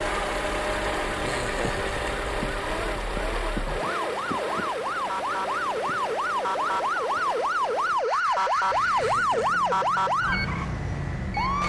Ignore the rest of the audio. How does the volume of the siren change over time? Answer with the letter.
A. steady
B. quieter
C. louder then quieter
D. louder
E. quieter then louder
D.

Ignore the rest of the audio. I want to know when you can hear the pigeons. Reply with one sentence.
You can't hear the pigeons here.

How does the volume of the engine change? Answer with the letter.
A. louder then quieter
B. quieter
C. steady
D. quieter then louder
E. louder
B.